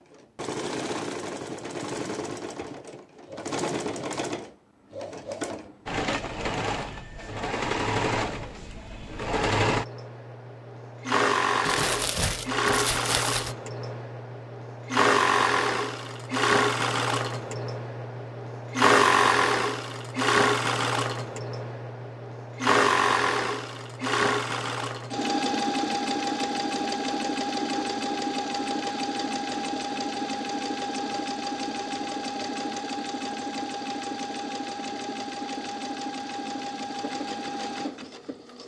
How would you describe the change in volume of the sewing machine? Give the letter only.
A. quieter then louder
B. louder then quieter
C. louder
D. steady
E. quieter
B.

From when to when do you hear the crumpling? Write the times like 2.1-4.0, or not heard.
11.7-13.6.